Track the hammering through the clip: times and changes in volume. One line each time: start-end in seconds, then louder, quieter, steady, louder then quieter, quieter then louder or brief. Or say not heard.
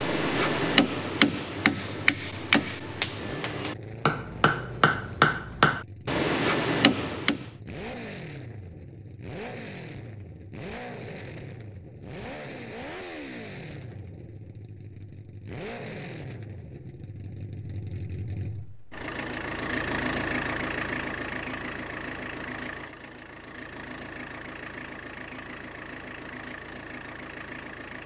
0.0-7.5 steady.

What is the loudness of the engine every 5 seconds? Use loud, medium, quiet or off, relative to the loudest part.
medium, medium, medium, loud, loud, medium.